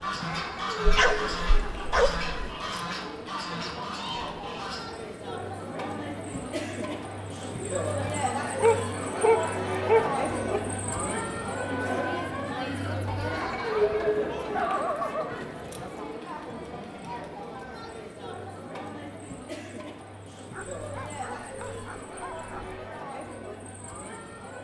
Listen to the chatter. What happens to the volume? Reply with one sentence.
The loudness of the chatter goes up, then down.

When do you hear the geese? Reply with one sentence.
The geese can be heard from 0.0 to 5.0 s.